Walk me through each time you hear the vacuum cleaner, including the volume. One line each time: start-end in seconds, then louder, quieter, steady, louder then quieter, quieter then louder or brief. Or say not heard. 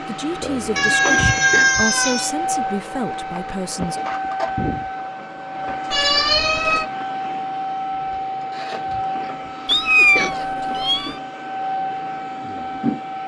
0.0-13.2 steady.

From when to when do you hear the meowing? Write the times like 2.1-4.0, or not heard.
0.8-2.3, 5.9-6.8, 9.7-11.2.